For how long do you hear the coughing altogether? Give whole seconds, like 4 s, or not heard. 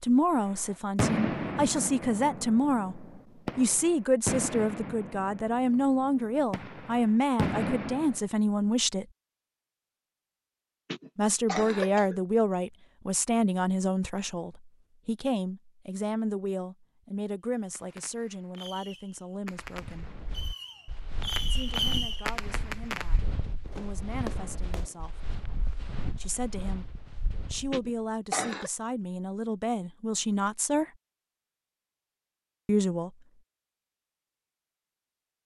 2 s.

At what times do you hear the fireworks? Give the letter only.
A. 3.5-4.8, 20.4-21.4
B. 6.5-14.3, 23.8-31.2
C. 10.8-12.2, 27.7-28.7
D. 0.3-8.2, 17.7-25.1
D.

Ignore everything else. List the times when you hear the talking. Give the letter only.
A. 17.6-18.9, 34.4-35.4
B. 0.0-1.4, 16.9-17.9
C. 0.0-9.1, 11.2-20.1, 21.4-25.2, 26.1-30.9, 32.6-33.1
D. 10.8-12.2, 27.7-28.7
C.